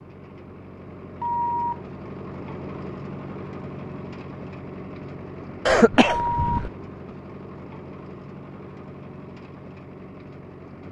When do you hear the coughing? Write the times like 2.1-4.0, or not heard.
5.7-6.7.